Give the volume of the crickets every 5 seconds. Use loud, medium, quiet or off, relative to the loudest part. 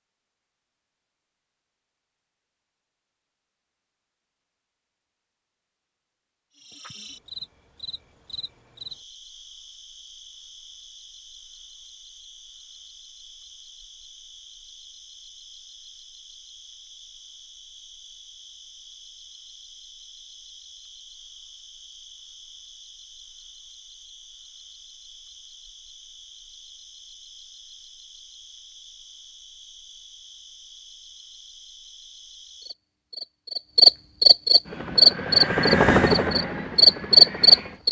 off, quiet, quiet, quiet, quiet, quiet, medium, loud.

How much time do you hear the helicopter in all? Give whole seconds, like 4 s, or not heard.
3 s.